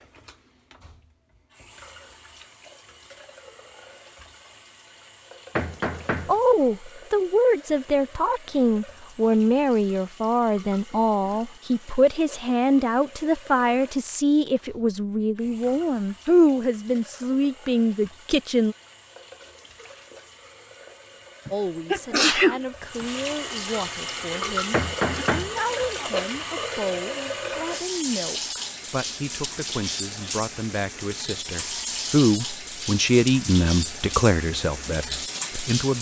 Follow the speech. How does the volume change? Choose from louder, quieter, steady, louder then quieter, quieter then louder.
quieter then louder.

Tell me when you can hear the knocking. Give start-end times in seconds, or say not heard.
5.5-6.4, 24.7-26.1.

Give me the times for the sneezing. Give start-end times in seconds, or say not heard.
21.4-23.1.